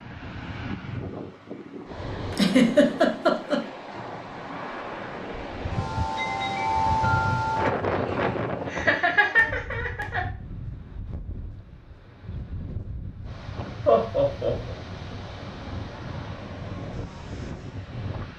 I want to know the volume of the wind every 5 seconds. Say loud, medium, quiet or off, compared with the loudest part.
medium, loud, quiet, medium.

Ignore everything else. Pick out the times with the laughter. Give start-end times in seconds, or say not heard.
2.3-3.6, 8.7-10.2, 13.8-14.8.